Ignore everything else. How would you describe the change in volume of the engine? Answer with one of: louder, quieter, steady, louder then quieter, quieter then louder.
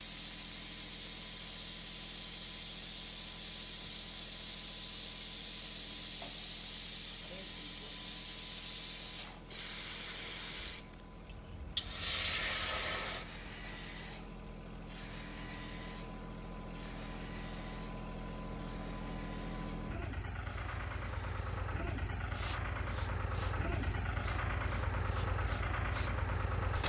louder.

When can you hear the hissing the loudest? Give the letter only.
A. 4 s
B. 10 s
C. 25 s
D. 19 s
B.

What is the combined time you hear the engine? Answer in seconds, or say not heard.
27 s.